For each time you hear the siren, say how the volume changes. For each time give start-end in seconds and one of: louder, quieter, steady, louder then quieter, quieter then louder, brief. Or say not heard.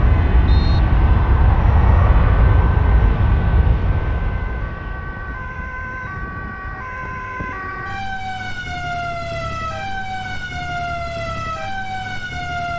0.0-12.7 louder.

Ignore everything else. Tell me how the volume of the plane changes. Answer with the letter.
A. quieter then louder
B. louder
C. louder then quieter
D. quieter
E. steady
D.